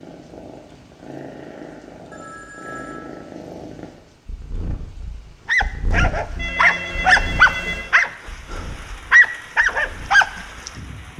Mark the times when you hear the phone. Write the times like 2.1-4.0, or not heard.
2.1-3.2, 6.3-7.9.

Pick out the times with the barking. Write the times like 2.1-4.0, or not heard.
5.5-10.7.